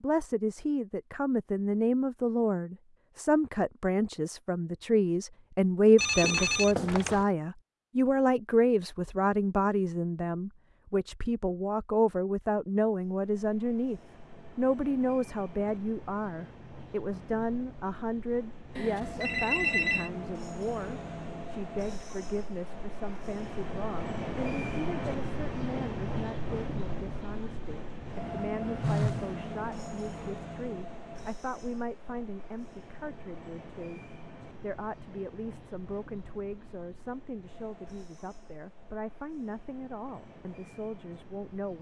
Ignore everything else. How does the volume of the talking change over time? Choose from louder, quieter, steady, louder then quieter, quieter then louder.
quieter.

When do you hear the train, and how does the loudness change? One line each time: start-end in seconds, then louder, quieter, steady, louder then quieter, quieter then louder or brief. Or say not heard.
13.2-41.7 louder then quieter.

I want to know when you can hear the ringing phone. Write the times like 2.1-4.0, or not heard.
6.0-7.2, 18.8-20.1, 28.8-29.2.